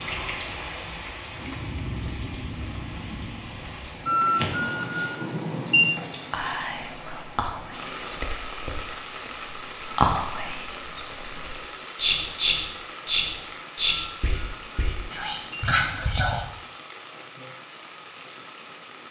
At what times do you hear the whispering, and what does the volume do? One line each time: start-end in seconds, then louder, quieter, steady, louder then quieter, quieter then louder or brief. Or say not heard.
6.3-16.4 louder then quieter.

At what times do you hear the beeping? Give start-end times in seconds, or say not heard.
4.0-5.9, 13.8-15.7.